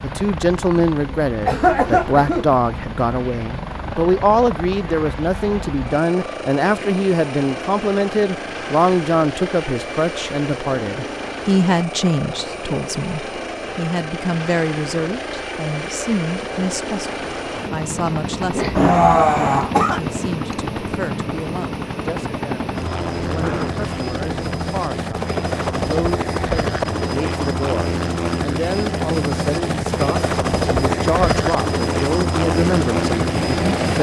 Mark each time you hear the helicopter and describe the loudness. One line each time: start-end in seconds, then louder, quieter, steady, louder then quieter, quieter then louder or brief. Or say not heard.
0.0-33.9 louder.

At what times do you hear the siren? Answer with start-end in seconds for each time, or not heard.
not heard.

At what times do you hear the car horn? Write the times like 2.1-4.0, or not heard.
not heard.